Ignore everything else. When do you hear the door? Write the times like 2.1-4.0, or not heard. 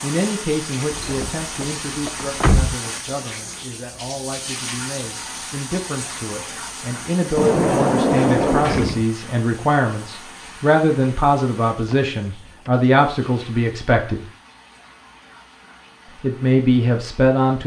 0.9-2.8, 7.3-9.1, 11.8-12.8.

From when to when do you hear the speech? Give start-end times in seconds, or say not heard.
0.0-14.2, 16.2-17.6.